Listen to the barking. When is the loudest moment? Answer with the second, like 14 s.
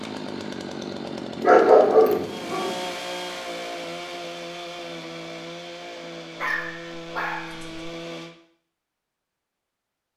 2 s.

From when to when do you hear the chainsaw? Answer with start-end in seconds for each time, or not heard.
0.0-8.3.